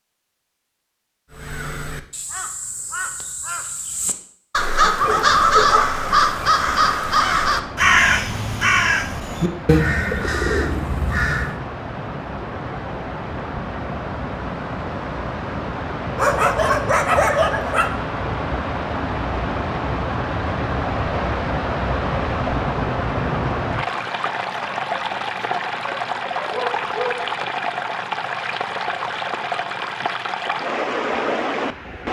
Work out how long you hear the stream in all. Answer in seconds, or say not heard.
27 s.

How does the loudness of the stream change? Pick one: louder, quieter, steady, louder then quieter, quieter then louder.
louder.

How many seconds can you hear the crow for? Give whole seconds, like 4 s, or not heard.
10 s.